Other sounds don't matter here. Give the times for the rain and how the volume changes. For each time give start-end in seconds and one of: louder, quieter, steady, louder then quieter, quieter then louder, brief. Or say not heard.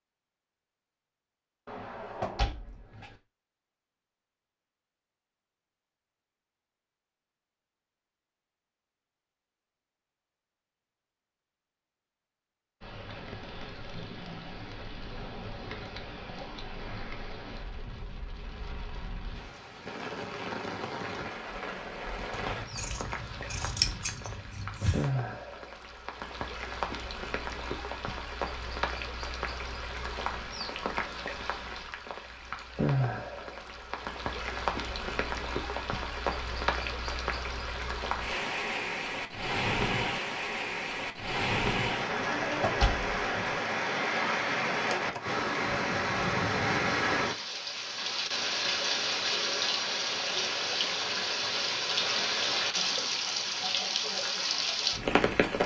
12.8-55.6 louder.